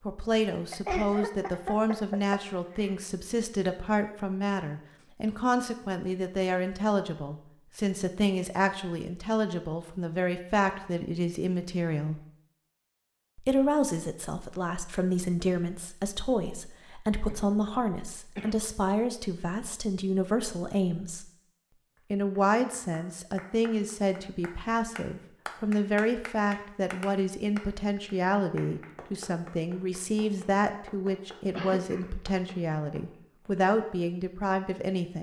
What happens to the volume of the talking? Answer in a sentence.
The loudness of the talking stays about the same.